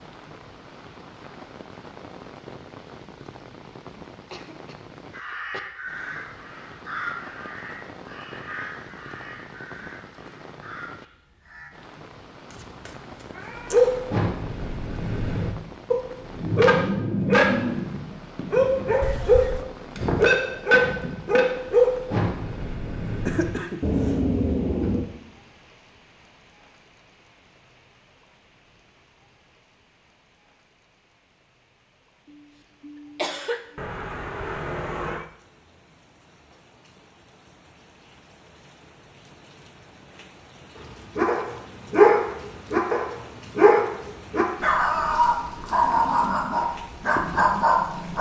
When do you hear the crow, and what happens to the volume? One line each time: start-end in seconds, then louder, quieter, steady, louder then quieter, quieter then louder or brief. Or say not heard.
5.1-11.7 quieter.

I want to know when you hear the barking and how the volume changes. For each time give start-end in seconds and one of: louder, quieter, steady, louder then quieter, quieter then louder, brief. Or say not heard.
13.7-25.1 louder then quieter
41.1-48.1 quieter.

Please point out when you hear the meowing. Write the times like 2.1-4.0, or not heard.
12.5-14.1, 19.0-19.6, 33.8-35.3.